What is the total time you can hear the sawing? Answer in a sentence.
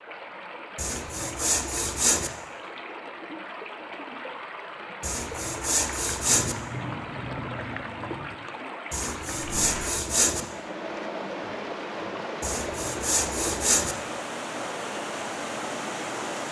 You can hear the sawing for 6 seconds altogether.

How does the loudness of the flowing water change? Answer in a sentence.
The volume of the flowing water goes up.